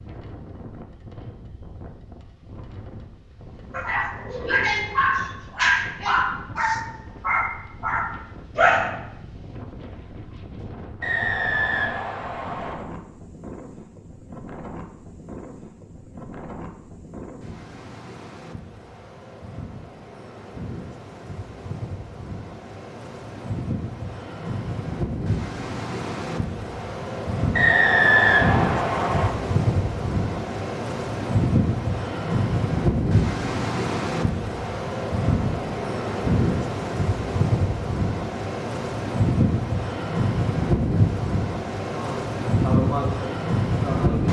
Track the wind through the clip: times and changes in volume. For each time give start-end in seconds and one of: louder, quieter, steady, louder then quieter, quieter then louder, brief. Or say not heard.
0.0-44.2 louder.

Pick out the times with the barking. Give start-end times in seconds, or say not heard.
3.7-8.9.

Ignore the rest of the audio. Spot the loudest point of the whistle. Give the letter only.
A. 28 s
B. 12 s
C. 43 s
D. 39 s
A.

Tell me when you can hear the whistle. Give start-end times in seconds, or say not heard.
11.0-12.8, 27.5-29.3.